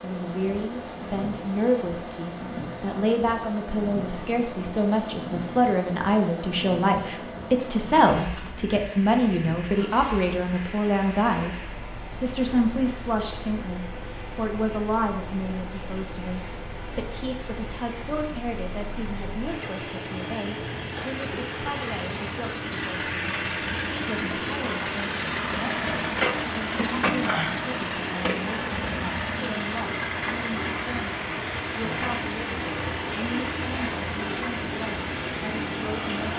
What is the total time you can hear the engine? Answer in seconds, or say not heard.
36 s.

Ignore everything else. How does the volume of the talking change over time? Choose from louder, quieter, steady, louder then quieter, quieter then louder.
quieter.